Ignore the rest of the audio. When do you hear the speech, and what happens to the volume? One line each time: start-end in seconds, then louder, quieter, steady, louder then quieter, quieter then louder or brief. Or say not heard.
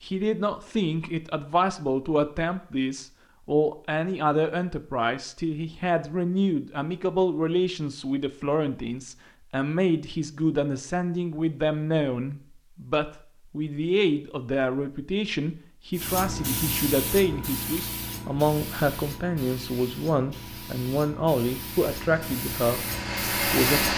0.0-23.9 steady.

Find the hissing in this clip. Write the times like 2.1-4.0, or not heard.
15.9-23.9.